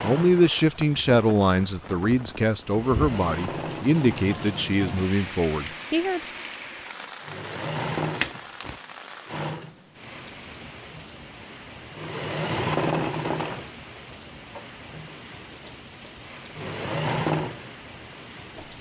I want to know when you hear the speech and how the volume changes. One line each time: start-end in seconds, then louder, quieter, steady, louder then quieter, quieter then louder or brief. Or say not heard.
0.0-6.3 quieter.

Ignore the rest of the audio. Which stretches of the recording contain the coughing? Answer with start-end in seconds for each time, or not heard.
not heard.